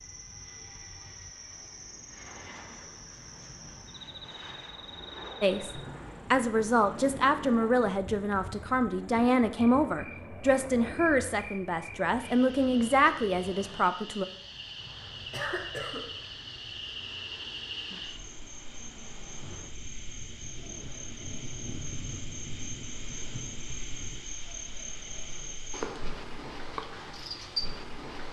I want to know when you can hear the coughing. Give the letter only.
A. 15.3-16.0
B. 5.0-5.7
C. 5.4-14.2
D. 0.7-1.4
A.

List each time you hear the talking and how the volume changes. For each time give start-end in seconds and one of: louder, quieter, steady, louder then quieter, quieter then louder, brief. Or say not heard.
5.4-14.2 steady.